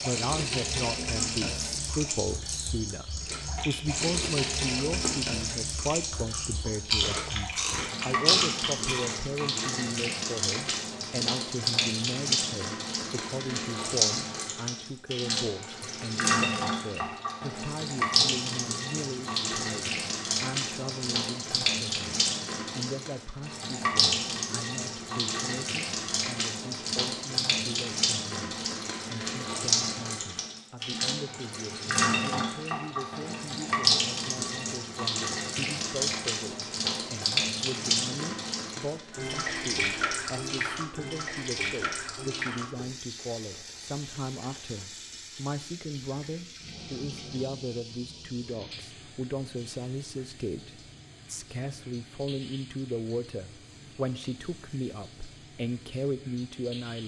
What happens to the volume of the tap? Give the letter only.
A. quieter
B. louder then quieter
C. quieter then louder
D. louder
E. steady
A.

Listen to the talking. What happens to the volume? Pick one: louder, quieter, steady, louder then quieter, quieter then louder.
quieter then louder.